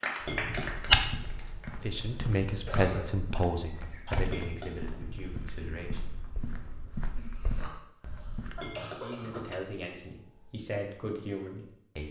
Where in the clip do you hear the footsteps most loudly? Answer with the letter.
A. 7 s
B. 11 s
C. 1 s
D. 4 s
C.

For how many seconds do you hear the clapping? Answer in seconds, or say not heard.
2 s.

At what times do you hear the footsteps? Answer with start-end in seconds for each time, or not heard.
0.5-8.7.